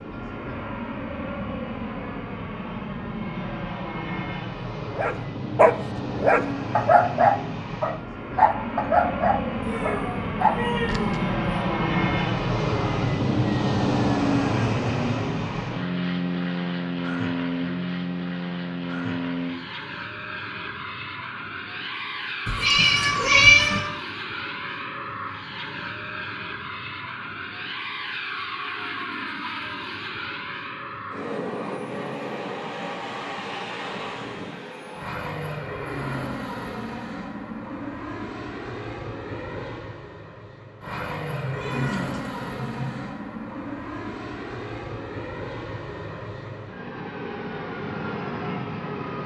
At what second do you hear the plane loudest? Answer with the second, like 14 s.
14 s.